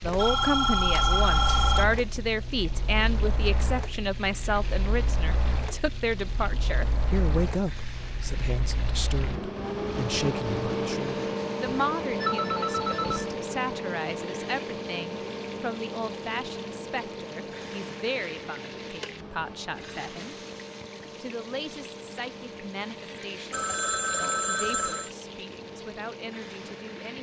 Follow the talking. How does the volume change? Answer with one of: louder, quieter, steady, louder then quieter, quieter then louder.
quieter.